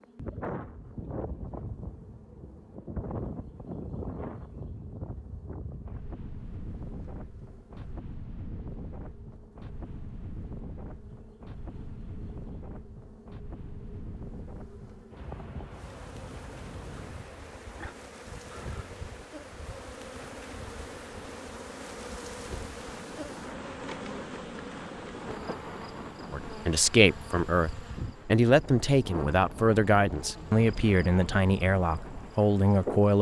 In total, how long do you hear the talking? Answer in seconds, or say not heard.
7 s.